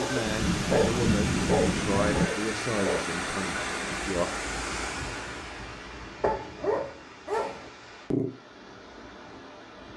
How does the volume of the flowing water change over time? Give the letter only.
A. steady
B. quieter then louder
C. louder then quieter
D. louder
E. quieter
E.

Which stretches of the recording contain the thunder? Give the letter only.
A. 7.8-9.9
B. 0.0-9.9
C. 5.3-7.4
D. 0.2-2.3
D.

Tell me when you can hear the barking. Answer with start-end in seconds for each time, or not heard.
0.0-3.0, 6.2-8.3.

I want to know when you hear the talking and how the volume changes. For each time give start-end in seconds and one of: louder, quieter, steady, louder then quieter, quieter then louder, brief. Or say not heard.
0.0-4.3 quieter.